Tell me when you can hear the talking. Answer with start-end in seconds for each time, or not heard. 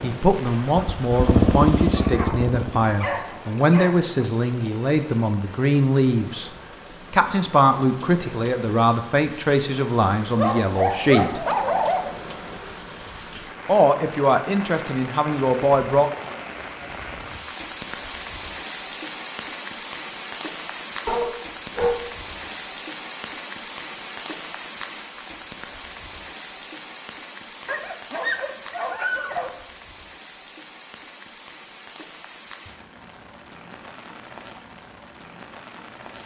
0.0-6.5, 7.1-11.4, 13.7-16.1.